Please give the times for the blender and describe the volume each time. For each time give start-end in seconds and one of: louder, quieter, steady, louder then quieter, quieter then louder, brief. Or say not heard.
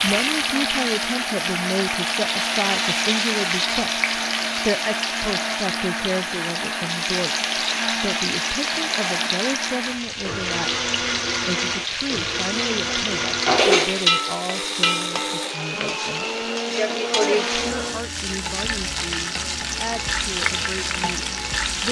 0.0-18.1 steady.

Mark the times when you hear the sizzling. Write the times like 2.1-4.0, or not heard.
0.0-21.8.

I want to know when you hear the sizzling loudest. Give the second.
14 s.